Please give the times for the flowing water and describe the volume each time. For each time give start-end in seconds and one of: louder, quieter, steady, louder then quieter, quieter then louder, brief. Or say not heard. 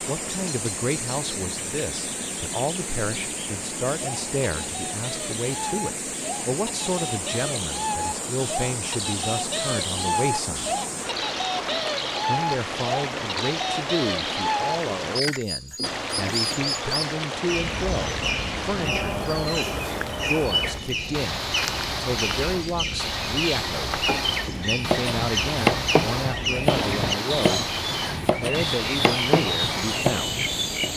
0.0-30.9 steady.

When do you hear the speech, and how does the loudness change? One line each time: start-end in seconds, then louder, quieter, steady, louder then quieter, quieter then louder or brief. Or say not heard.
0.1-10.8 steady
12.2-30.4 steady.